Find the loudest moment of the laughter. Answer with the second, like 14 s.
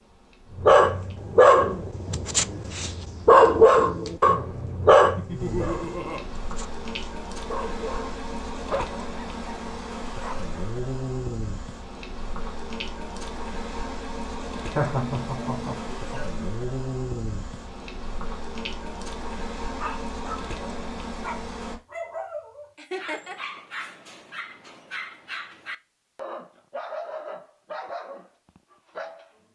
15 s.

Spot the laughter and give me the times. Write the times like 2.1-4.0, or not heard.
5.2-6.2, 14.6-16.5, 22.8-23.4.